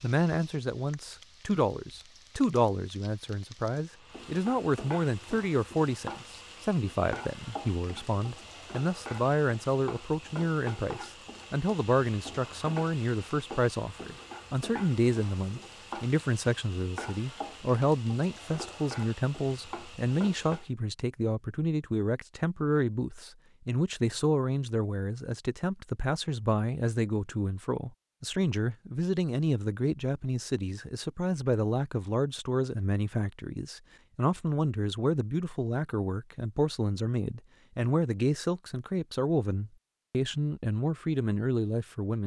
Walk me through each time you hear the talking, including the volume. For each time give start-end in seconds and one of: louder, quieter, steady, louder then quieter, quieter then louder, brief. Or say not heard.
0.0-42.2 steady.